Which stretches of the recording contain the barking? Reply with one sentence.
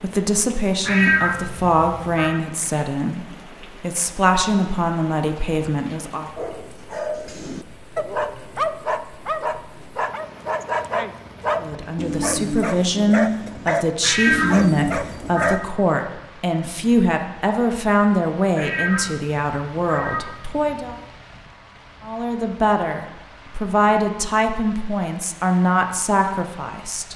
The barking can be heard from 6.3 to 15.6 s.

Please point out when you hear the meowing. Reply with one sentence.
You can hear the meowing from 0.8 to 2.4 s, from 14.0 to 15.7 s and from 18.6 to 21.1 s.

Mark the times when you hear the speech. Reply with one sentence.
The speech can be heard from 0.0 to 6.3 s, from 11.6 to 20.9 s and from 22.0 to 27.1 s.